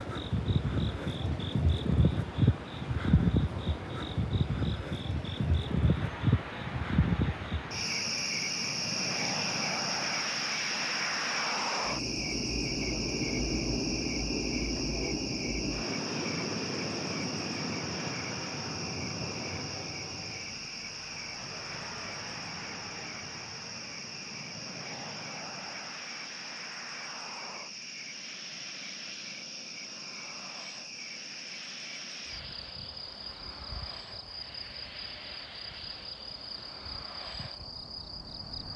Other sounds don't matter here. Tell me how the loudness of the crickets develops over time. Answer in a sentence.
The loudness of the crickets goes down.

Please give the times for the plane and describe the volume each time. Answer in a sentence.
You can hear the plane from 0.0 to 38.7 s, getting louder then quieter.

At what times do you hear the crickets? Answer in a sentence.
The crickets can be heard from 0.0 to 38.7 s.